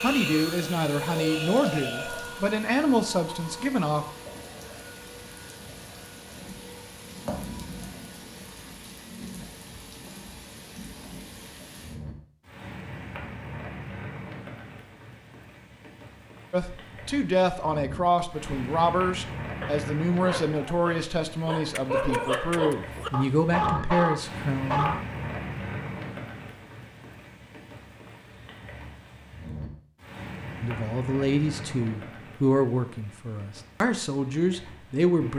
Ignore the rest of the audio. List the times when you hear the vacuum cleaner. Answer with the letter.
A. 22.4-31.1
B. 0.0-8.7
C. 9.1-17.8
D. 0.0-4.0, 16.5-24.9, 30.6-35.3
B.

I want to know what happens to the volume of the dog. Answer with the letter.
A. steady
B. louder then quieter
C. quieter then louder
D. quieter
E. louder
E.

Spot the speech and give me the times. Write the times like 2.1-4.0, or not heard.
0.0-4.0, 16.5-24.9, 30.6-35.3.